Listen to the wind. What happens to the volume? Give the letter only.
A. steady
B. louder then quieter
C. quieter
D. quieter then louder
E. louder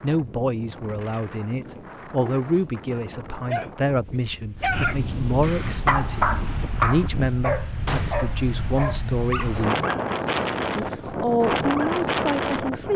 E.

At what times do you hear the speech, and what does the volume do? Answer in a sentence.
You can hear the speech from 0.0 to 9.8 s, at a steady volume; and briefly from 10.8 to 12.9 s.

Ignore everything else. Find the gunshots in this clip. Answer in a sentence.
The gunshots can be heard from 7.8 to 8.2 s.